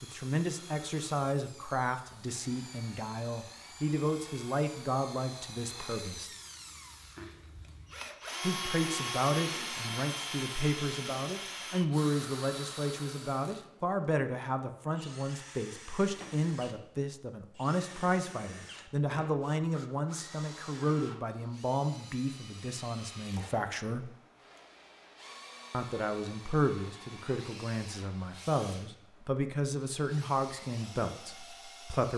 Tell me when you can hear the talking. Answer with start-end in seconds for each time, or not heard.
0.0-6.3, 8.4-24.1, 25.7-32.1.